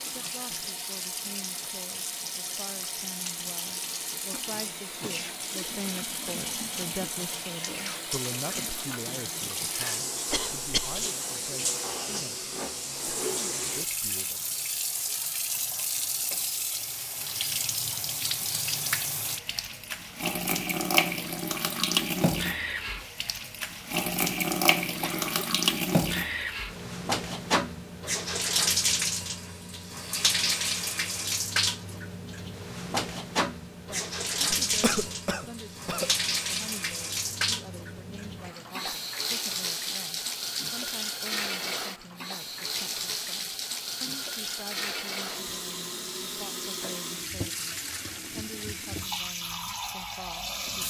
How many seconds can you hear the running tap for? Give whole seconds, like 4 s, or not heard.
51 s.